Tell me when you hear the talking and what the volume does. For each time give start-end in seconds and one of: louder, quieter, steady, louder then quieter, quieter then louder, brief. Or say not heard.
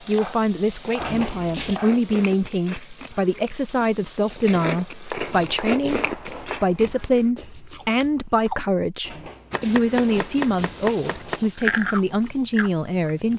0.1-13.3 steady.